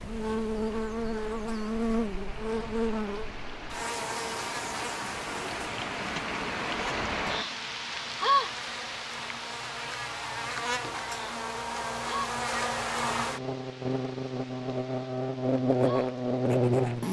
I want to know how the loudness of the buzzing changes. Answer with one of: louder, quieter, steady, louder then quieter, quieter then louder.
quieter then louder.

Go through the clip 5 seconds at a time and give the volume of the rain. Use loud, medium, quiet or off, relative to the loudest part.
medium, loud, medium, quiet.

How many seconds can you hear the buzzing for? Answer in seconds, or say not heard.
17 s.